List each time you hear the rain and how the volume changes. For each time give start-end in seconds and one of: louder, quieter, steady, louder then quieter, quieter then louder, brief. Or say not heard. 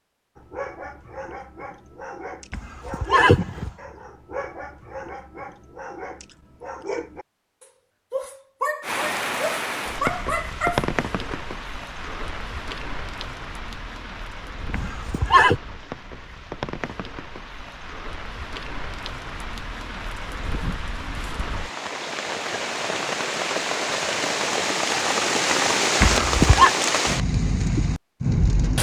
8.8-28.7 quieter then louder.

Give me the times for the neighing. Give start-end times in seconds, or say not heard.
2.5-3.7, 14.7-15.6, 26.0-26.7.